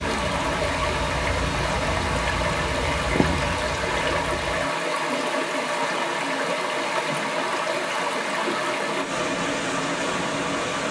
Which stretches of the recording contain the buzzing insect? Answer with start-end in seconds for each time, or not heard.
0.0-4.7.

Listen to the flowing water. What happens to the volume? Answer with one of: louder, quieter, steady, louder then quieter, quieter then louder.
steady.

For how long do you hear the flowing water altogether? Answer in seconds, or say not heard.
11 s.